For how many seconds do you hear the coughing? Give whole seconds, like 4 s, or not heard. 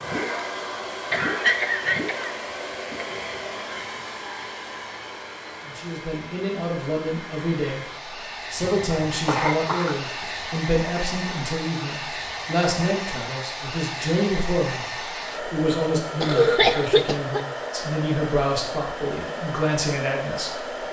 4 s.